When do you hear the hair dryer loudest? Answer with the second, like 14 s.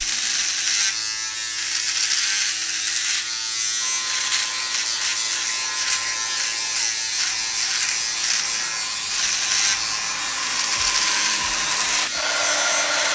13 s.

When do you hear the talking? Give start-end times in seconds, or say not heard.
not heard.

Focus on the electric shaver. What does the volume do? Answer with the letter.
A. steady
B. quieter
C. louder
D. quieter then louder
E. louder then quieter
A.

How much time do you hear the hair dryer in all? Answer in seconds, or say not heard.
9 s.